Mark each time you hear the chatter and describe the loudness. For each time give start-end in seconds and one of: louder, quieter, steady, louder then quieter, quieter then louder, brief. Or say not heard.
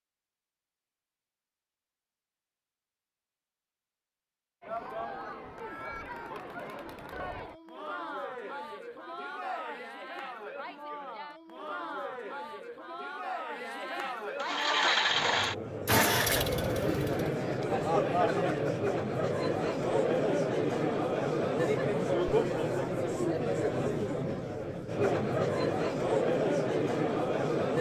4.6-27.7 louder.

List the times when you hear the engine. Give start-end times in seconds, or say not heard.
14.4-17.3.